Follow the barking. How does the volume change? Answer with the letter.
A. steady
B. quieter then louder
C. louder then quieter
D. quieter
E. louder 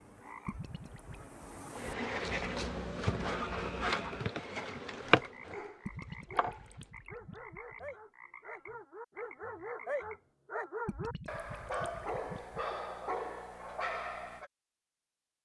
E.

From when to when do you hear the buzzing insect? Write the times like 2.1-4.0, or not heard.
1.8-6.9.